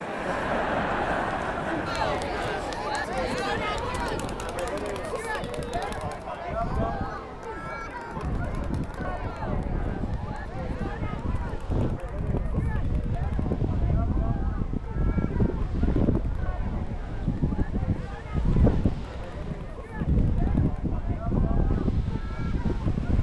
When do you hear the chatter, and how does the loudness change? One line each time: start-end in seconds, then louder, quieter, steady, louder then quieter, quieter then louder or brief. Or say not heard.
0.0-23.1 quieter.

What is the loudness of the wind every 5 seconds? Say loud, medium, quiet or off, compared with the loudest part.
quiet, medium, loud, loud, loud.